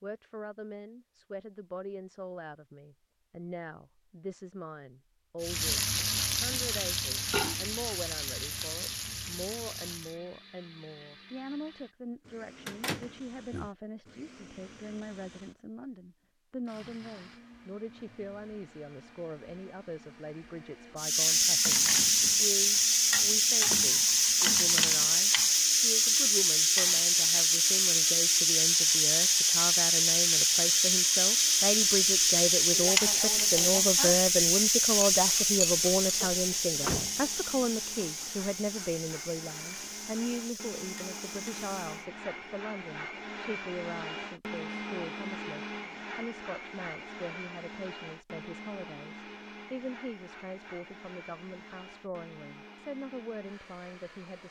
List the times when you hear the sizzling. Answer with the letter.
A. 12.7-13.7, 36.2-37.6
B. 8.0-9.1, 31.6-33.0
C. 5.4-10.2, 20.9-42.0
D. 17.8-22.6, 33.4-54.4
C.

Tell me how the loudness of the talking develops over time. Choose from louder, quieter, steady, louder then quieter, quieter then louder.
louder then quieter.